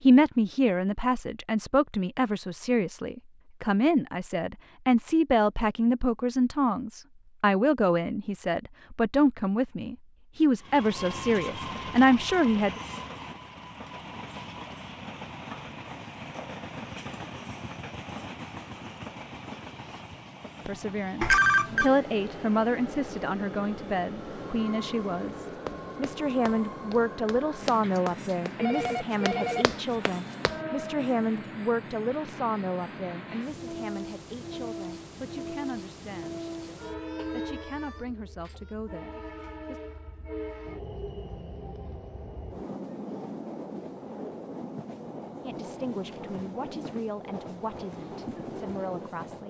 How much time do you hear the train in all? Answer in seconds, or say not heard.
39 s.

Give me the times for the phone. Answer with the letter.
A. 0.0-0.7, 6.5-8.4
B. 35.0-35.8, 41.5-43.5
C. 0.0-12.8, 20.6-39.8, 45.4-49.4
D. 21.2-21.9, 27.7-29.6
D.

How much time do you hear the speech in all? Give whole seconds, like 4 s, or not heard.
36 s.